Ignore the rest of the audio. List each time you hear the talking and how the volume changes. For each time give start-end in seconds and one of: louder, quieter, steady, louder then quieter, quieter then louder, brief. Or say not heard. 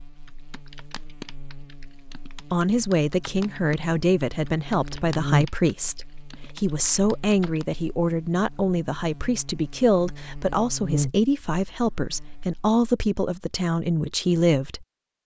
2.5-15.2 steady.